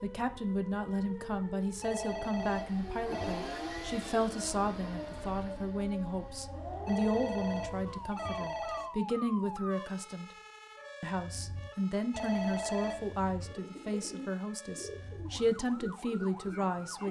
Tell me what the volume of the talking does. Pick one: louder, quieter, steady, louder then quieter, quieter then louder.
steady.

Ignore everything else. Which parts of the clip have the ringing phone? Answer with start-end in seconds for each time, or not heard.
1.8-3.5, 6.8-8.9, 12.1-13.2.